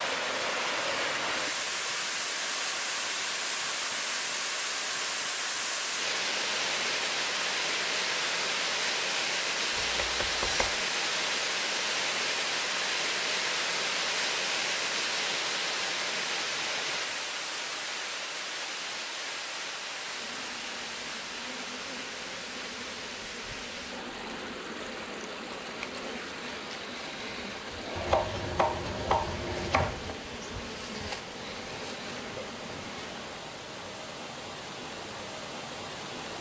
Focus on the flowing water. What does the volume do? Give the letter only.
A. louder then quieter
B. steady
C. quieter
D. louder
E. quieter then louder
C.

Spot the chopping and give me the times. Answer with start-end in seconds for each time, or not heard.
9.8-10.8, 27.9-30.1.